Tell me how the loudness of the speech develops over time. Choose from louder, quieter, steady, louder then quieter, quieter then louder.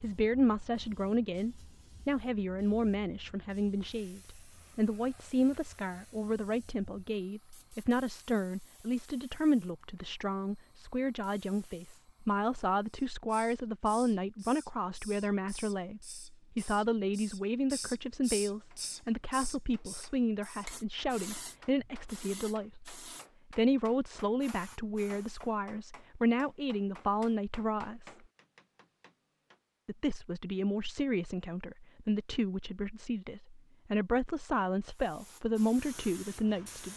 steady.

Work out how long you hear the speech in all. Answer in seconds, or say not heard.
35 s.